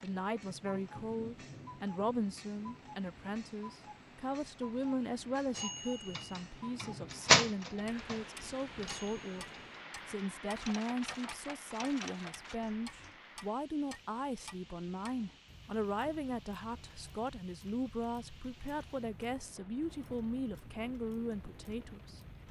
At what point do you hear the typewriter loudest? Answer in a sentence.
The volume of the typewriter peaks at 7 seconds.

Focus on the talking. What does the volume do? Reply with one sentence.
The loudness of the talking stays about the same.